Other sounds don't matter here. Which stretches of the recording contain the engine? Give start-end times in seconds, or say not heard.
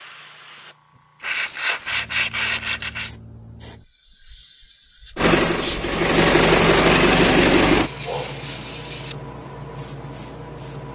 5.2-7.9.